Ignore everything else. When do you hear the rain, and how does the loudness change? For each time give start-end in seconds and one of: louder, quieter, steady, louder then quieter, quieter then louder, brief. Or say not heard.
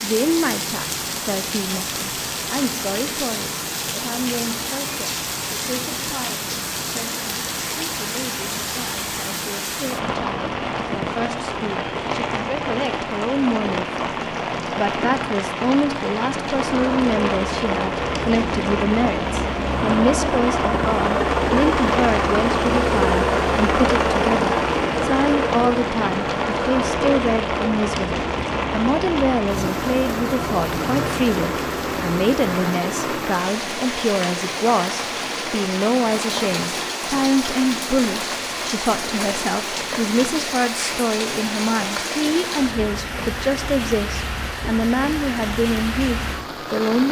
0.0-47.0 steady.